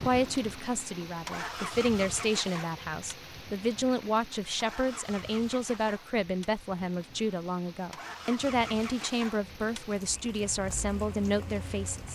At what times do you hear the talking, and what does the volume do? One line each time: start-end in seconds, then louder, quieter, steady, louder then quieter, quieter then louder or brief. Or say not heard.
0.0-12.1 steady.